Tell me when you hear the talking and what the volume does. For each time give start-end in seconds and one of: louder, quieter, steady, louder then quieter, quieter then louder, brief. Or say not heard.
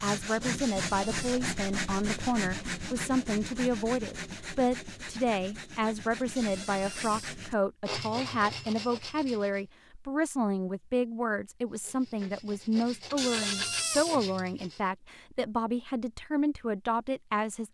0.0-17.7 steady.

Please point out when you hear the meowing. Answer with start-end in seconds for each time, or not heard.
0.6-1.4, 6.3-7.4, 13.2-14.2.